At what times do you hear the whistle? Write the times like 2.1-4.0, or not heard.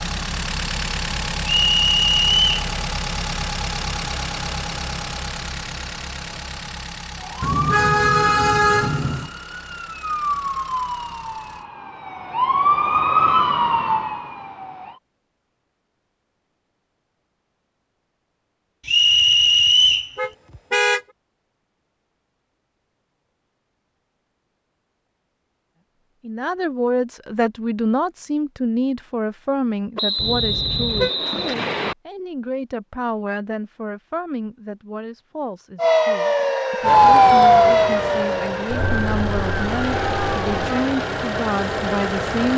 1.4-2.5, 18.9-20.1, 29.9-31.9.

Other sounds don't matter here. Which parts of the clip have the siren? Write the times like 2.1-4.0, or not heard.
7.2-15.0, 35.8-40.9.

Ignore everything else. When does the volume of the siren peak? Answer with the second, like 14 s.
37 s.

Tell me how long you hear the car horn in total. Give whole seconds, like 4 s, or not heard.
4 s.